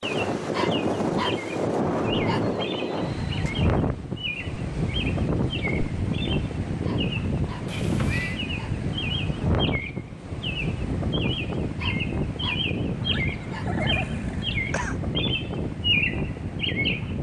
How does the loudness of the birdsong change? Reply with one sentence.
The volume of the birdsong goes up.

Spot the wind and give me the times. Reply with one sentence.
The wind can be heard from 0.0 to 17.1 s.